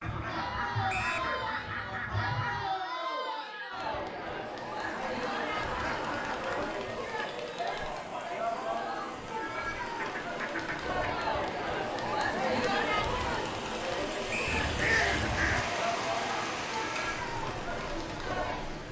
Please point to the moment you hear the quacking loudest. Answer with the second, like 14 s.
15 s.